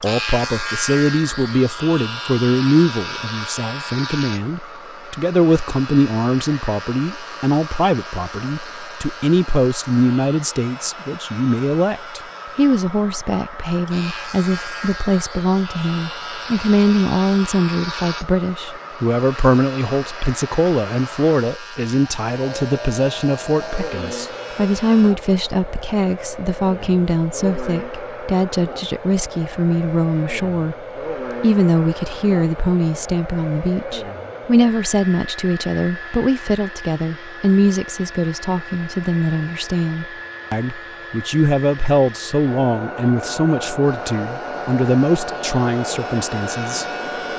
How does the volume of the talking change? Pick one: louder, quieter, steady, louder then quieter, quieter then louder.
steady.